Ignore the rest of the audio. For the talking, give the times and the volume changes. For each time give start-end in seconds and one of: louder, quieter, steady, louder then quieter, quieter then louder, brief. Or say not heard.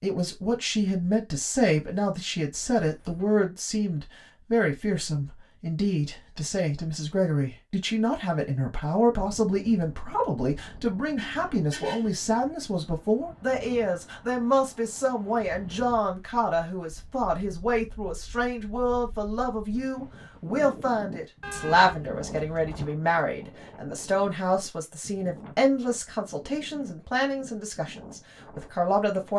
0.0-29.3 steady.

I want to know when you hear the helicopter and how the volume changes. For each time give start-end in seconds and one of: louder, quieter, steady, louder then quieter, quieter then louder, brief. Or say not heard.
not heard.